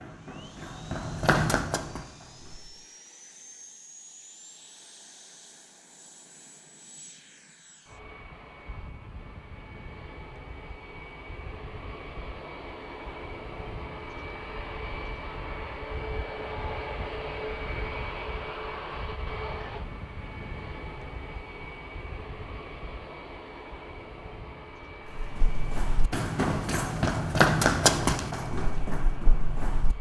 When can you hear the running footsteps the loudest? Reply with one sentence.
The loudest moment of the running footsteps is at 28 seconds.